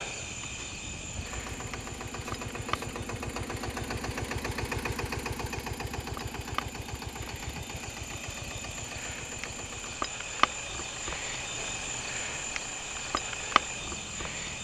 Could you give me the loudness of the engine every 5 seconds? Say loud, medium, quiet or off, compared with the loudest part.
loud, loud, medium.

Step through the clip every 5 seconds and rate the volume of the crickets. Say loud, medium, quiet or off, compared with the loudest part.
medium, medium, loud.